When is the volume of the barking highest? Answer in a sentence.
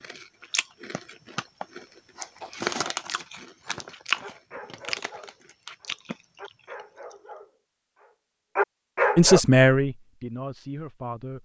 The loudest moment of the barking is at 9 seconds.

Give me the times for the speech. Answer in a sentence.
You can hear the speech from 9.2 to 11.3 s.